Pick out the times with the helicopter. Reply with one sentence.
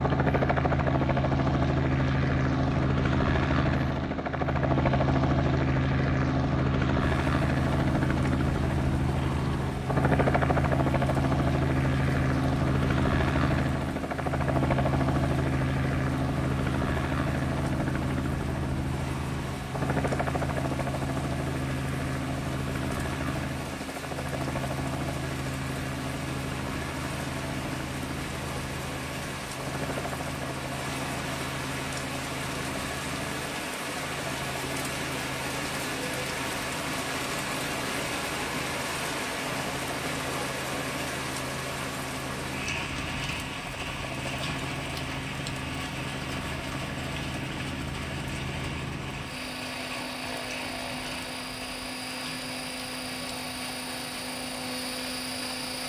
The helicopter can be heard from 0.0 to 55.8 s.